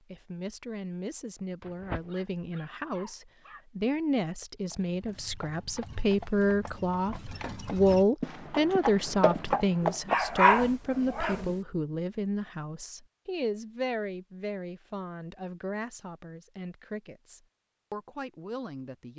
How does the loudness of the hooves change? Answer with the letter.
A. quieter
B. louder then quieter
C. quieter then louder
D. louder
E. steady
D.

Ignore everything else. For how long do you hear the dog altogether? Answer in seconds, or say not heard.
4 s.